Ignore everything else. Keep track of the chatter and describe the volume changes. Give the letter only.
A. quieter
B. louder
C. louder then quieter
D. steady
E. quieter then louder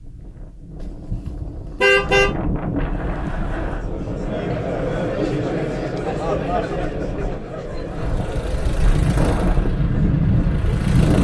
C.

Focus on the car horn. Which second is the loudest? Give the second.
2 s.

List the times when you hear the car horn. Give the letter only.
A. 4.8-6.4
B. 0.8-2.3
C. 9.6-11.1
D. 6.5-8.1
B.